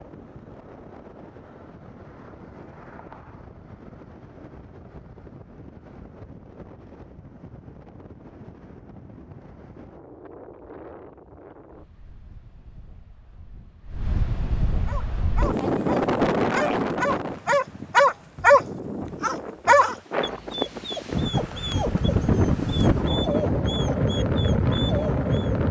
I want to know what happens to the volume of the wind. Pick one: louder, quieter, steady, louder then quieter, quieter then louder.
louder.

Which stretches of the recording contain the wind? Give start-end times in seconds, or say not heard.
0.0-25.6.